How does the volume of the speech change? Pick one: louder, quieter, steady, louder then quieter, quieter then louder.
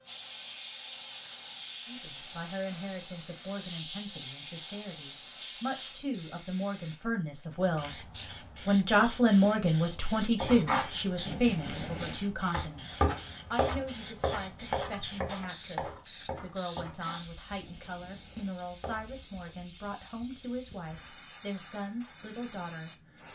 louder then quieter.